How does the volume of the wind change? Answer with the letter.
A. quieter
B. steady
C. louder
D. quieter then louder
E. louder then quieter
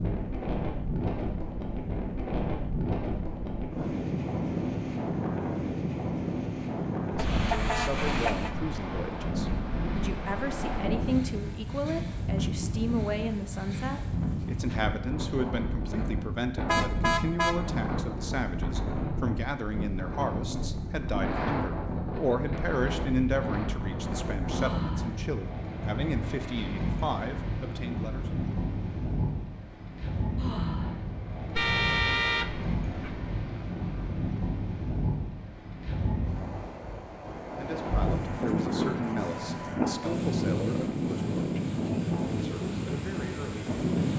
B.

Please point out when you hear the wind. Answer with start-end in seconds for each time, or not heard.
0.0-44.1.